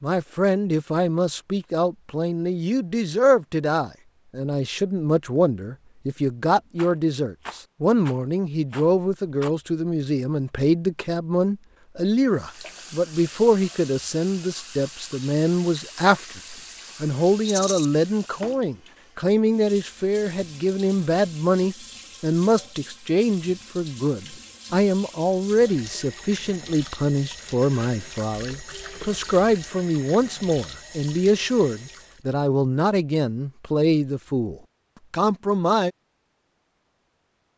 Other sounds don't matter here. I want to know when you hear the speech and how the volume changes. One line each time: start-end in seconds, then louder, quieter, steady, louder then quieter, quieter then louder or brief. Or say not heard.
0.0-35.9 steady.